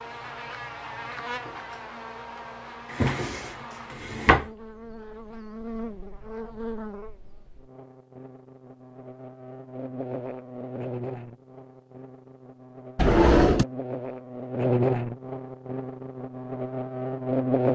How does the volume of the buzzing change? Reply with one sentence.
The loudness of the buzzing goes up.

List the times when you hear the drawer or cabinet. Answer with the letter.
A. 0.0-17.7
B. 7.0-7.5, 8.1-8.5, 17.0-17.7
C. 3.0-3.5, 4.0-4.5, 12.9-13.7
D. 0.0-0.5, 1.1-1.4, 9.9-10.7
C.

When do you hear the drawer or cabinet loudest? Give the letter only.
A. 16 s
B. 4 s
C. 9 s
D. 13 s
D.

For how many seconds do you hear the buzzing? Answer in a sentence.
The buzzing can be heard for 18 seconds in total.